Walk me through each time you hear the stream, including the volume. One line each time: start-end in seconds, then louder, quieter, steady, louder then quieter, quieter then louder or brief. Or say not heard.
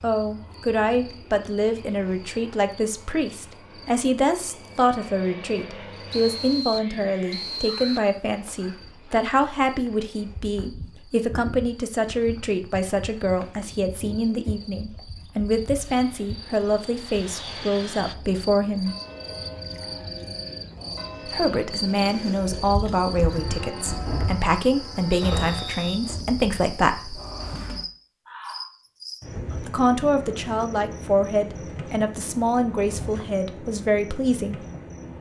not heard.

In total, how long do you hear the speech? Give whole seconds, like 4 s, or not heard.
30 s.